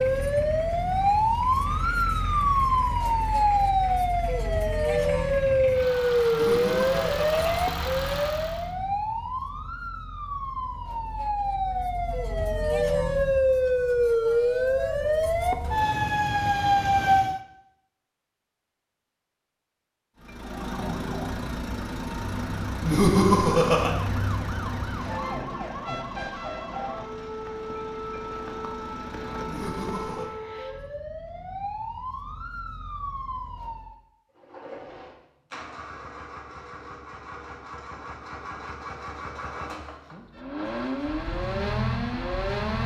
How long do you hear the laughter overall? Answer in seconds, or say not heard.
3 s.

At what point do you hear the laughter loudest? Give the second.
23 s.